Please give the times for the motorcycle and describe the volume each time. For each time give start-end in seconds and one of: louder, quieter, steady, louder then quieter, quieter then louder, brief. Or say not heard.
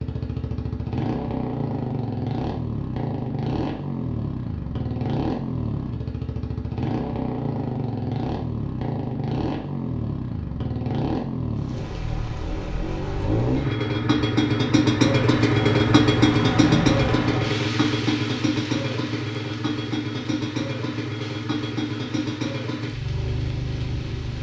0.0-24.3 louder then quieter.